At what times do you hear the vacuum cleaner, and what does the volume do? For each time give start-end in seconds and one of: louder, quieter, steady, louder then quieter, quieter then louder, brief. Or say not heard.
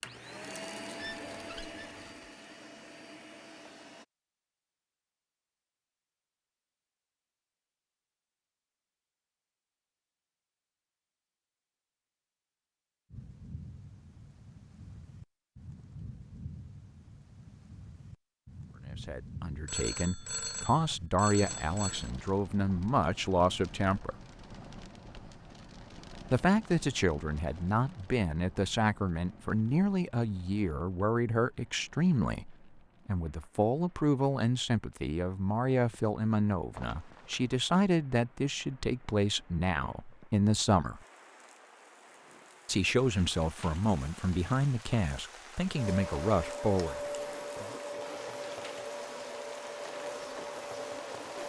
0.0-4.0 quieter
45.8-51.4 steady.